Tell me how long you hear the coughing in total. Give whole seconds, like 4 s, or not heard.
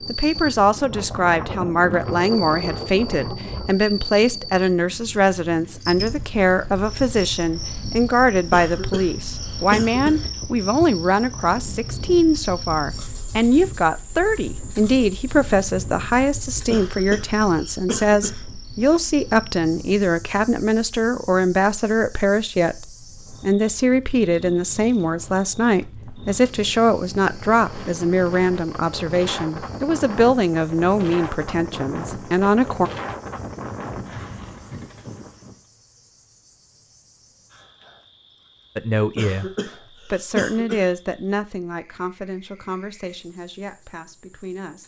5 s.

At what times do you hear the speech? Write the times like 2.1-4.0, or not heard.
0.1-32.9, 38.8-44.8.